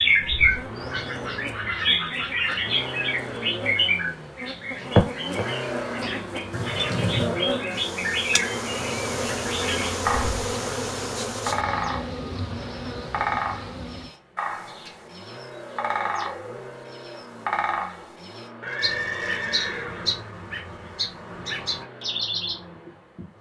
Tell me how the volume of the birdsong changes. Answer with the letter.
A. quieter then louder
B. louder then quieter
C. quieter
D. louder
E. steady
C.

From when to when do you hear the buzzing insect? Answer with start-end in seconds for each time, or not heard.
0.0-14.2.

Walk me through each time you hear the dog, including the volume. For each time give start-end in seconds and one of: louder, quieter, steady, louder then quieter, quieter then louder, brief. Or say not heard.
not heard.